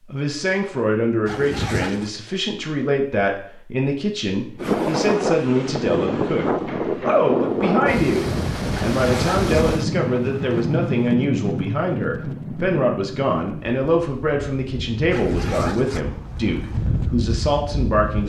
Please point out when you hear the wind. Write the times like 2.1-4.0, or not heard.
4.5-18.2.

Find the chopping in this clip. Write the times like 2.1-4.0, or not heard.
not heard.